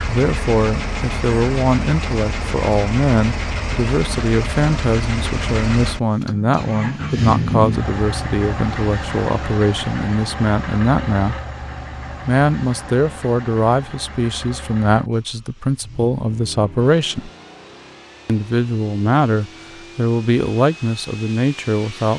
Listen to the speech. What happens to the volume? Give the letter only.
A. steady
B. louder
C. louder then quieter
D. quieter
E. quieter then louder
A.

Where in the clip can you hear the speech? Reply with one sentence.
You can hear the speech from 0.1 to 11.4 s, from 12.2 to 17.3 s and from 18.2 to 22.1 s.